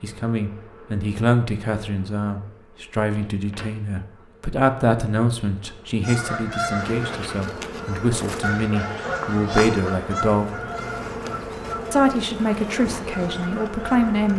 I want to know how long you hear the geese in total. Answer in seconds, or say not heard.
8 s.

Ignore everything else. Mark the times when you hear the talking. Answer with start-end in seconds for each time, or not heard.
0.0-10.5, 11.9-14.3.